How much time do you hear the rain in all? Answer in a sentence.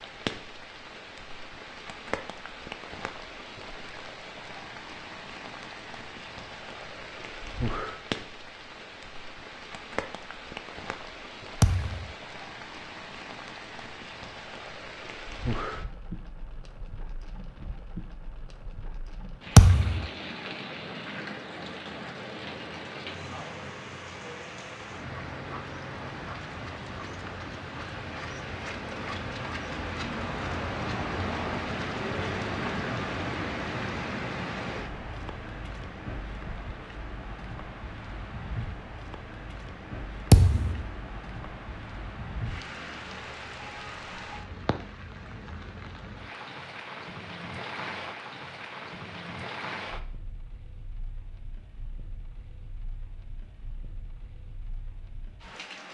You can hear the rain for 56 seconds altogether.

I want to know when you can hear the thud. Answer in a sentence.
The thud can be heard from 11.6 to 12.1 s, from 19.6 to 20.1 s and from 40.3 to 40.9 s.